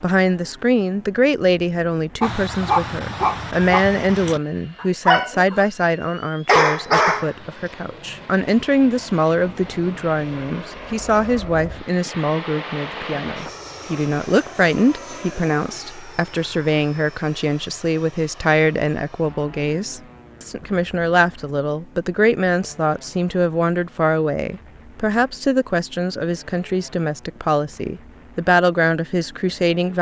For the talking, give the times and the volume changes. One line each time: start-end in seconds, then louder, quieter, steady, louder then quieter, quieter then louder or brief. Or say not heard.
0.0-29.9 steady.